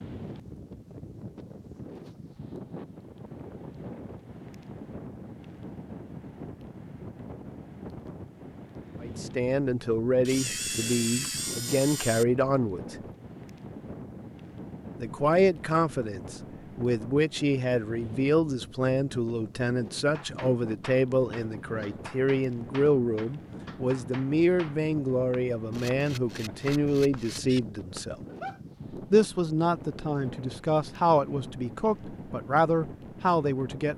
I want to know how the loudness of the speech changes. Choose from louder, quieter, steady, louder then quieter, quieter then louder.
steady.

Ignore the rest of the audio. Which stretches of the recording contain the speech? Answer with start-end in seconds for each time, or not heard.
9.0-12.9, 15.0-28.1, 29.1-33.9.